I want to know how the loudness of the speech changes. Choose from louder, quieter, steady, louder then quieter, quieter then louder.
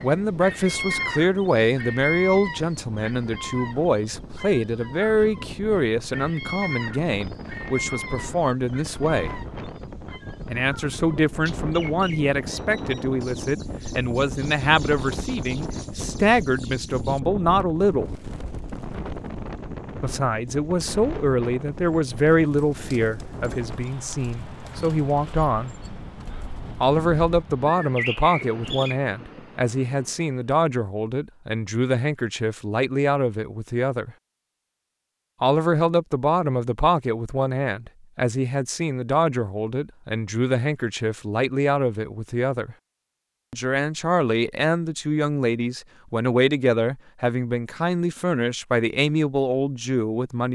steady.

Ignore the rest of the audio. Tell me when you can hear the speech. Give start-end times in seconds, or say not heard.
0.0-9.4, 10.4-18.2, 20.0-25.8, 26.8-34.1, 35.4-42.8, 43.5-50.5.